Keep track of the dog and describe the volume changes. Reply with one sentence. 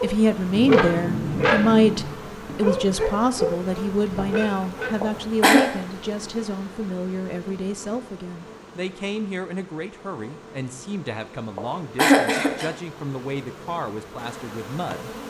The loudness of the dog goes down.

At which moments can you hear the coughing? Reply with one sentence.
The coughing can be heard from 5.0 to 5.7 s and from 11.6 to 12.7 s.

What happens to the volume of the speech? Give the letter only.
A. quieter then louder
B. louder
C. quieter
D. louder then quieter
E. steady
C.